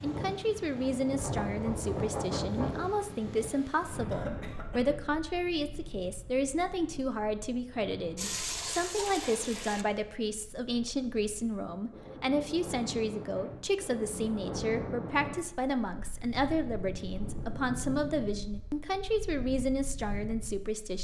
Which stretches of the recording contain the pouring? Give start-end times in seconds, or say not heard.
8.2-9.8.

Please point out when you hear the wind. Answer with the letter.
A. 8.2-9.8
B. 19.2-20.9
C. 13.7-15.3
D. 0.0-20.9
D.